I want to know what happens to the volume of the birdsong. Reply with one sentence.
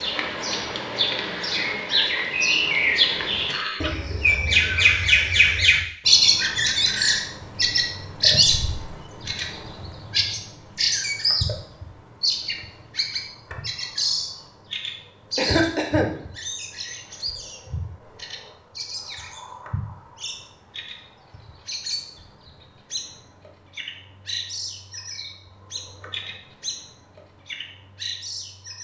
The volume of the birdsong goes down.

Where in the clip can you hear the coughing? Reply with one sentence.
The coughing can be heard from 3.5 to 5.7 s and from 15.3 to 16.1 s.